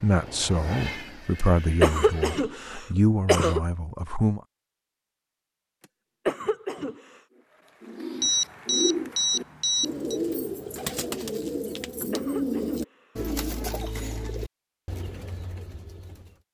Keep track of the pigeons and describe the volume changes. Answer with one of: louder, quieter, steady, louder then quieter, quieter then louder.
quieter.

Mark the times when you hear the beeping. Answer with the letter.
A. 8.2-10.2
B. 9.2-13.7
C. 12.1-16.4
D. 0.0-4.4
A.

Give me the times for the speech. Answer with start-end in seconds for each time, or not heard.
0.0-4.4.